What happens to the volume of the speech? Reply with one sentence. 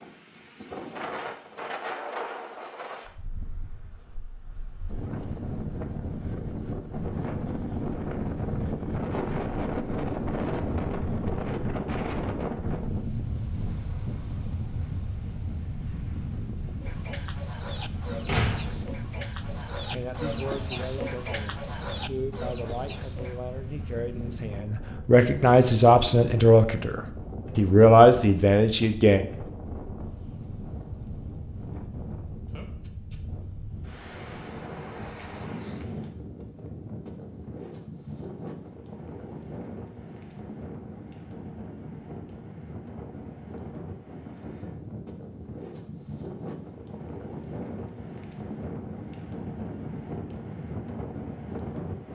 The loudness of the speech goes up.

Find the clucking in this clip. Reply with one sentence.
The clucking can be heard from 16.8 to 23.4 s.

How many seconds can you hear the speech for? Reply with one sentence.
You can hear the speech for 9 seconds altogether.